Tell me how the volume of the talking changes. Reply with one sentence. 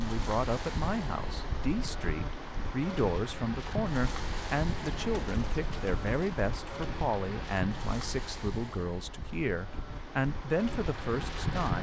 The loudness of the talking stays about the same.